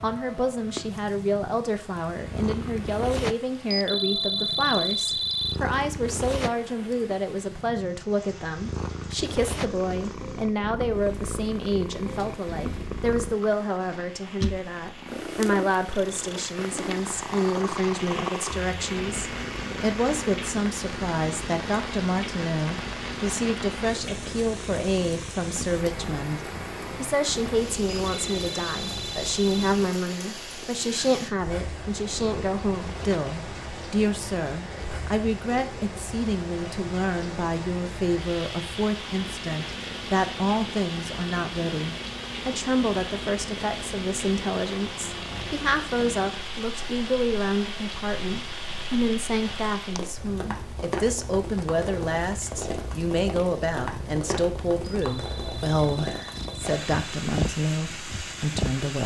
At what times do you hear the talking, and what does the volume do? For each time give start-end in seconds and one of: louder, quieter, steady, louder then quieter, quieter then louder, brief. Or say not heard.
0.0-59.0 steady.